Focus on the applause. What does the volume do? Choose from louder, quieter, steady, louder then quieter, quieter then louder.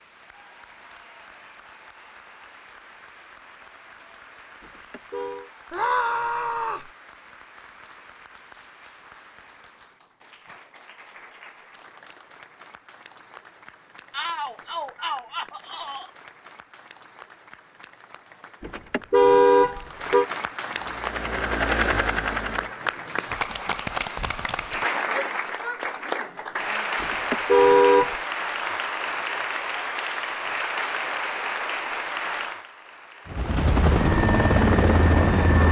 louder.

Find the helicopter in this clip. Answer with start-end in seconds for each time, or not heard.
20.7-25.6, 33.2-35.6.